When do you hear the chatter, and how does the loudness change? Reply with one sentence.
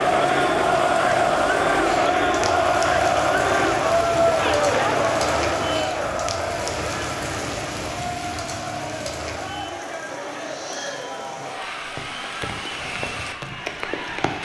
The chatter can be heard from 0.0 to 14.3 s, getting quieter.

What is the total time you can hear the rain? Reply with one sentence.
The rain can be heard for 14 seconds in total.